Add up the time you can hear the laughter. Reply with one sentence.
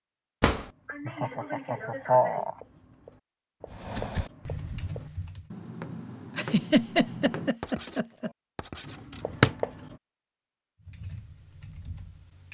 The laughter can be heard for 4 seconds in total.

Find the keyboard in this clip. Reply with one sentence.
You can hear the keyboard from 3.6 to 5.5 s and from 10.8 to 12.5 s.